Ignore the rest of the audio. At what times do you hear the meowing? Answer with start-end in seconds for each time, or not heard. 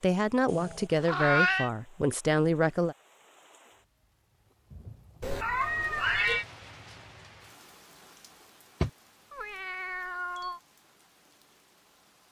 0.5-1.7, 5.2-6.5, 8.8-10.6.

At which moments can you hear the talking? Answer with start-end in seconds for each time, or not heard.
0.0-3.0.